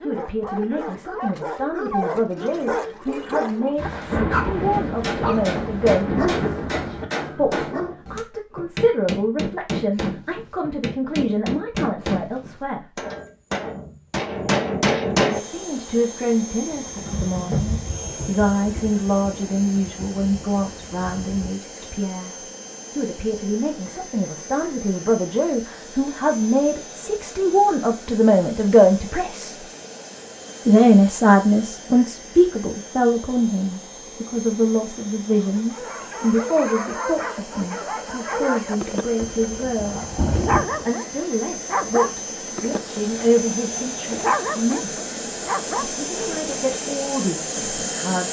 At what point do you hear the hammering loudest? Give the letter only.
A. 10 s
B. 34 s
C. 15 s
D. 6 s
C.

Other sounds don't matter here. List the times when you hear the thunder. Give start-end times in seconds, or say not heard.
3.8-7.0, 16.7-21.5, 39.2-40.9.